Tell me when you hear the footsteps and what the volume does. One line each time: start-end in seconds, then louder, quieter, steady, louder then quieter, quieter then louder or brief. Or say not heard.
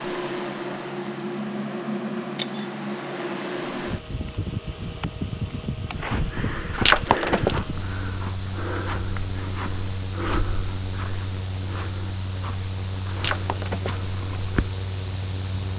6.0-14.8 quieter.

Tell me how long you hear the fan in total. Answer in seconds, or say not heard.
16 s.